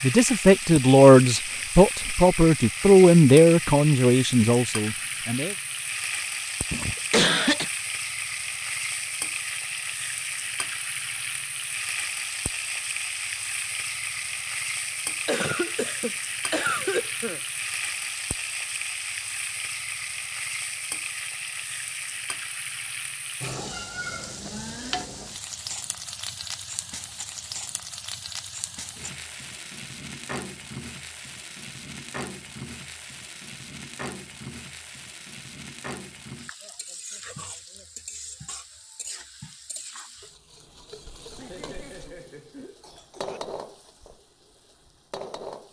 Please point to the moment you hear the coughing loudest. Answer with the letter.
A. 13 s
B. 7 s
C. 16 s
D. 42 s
B.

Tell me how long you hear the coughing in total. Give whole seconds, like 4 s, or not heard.
5 s.